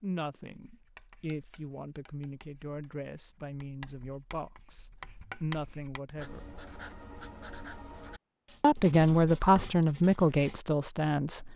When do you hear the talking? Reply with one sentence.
The talking can be heard from 0.0 to 6.5 s and from 8.6 to 11.5 s.